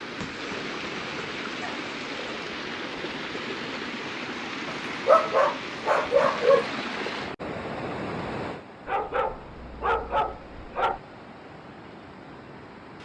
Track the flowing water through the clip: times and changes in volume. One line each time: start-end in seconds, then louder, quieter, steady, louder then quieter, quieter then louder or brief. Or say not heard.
0.0-13.0 quieter.